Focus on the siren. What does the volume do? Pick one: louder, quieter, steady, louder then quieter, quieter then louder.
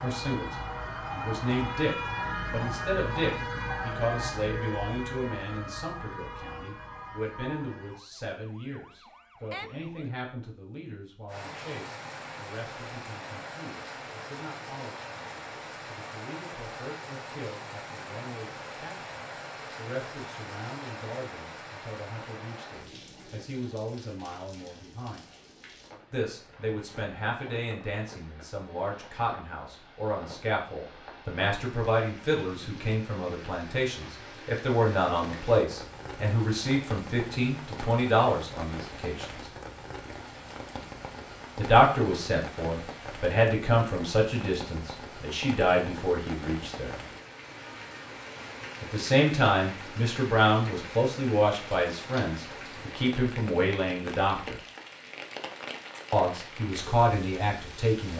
quieter.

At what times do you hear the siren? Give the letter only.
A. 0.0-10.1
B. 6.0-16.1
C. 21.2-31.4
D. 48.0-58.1
A.